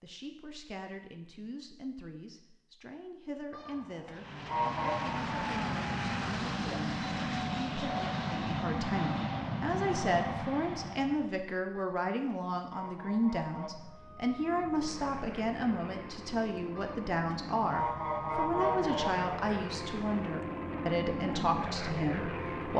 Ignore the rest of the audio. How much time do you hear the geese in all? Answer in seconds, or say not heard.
6 s.